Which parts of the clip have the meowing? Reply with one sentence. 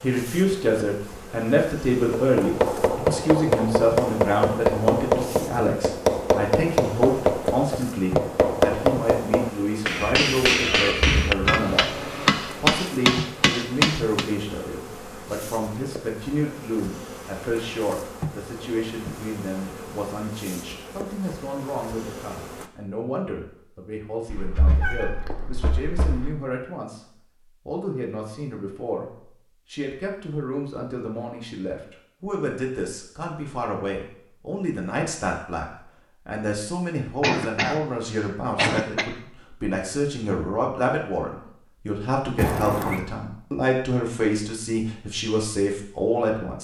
You can hear the meowing from 9.9 to 11.8 s, from 24.2 to 26.3 s and from 42.4 to 43.0 s.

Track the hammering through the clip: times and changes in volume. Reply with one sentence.
The hammering can be heard from 2.1 to 14.3 s, at a steady volume.